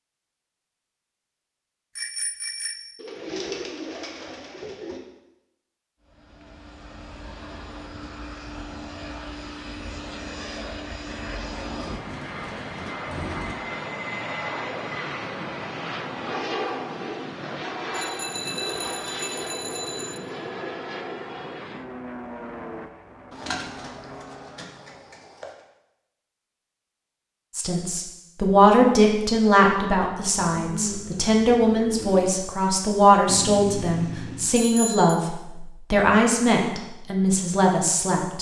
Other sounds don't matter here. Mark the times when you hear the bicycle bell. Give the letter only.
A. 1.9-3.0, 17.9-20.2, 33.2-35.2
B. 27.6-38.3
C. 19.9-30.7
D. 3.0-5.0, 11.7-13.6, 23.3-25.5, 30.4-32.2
A.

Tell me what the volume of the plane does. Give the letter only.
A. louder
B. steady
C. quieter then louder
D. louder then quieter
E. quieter
D.